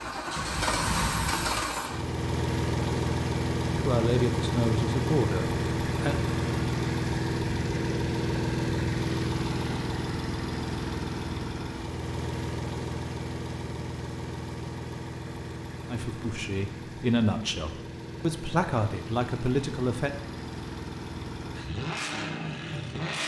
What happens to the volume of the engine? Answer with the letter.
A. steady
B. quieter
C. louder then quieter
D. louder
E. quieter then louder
B.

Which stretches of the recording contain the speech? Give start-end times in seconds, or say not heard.
3.6-6.2, 15.9-20.1.